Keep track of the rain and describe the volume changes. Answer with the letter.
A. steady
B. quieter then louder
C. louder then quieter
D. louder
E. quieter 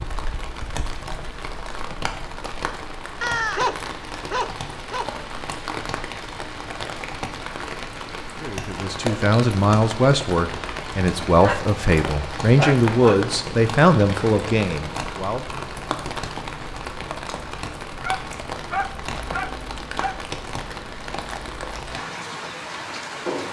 A.